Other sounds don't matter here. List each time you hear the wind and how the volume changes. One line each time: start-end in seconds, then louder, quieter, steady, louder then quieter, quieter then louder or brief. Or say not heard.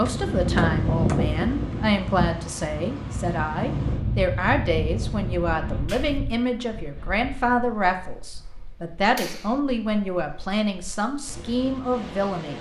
0.0-12.5 quieter then louder.